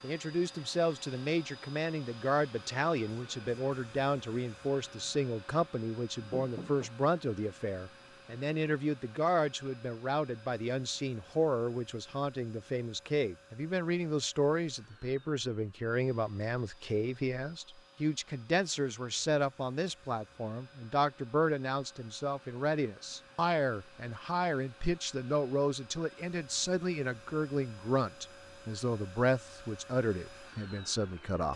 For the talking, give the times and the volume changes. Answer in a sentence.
You can hear the talking from 0.0 to 31.5 s, at a steady volume.